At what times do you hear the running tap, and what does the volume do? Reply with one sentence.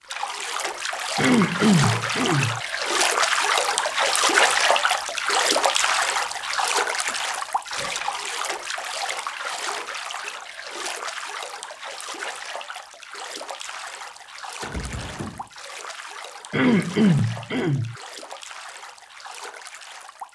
You can hear the running tap from 0.0 to 20.3 s, getting quieter.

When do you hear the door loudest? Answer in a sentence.
The loudest moment of the door is at 15 seconds.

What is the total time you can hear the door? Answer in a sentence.
The door can be heard for 2 seconds in total.